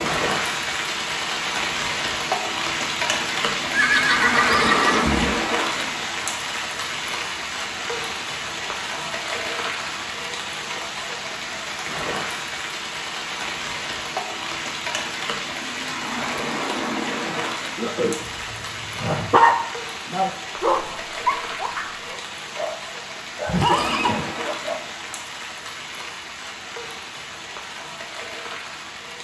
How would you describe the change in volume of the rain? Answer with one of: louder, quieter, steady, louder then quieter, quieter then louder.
quieter.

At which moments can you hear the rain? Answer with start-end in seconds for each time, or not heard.
0.0-29.2.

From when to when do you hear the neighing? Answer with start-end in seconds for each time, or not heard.
3.7-5.5, 23.4-24.2.